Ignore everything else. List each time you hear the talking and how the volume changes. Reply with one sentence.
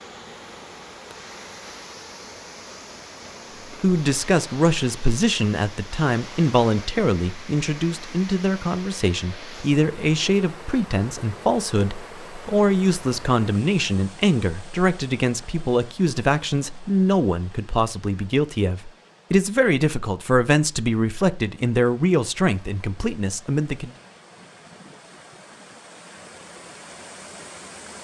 You can hear the talking from 3.8 to 23.9 s, at a steady volume.